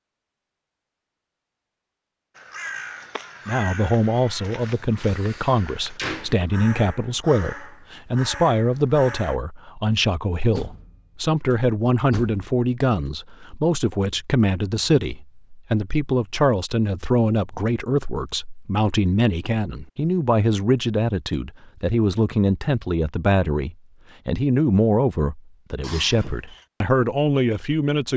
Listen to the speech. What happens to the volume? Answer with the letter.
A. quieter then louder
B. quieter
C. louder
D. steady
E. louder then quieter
D.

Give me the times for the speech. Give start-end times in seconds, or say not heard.
3.5-28.1.